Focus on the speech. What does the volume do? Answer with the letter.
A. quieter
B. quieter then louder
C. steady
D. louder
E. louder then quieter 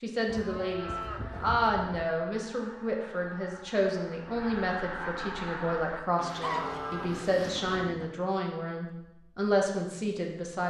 C.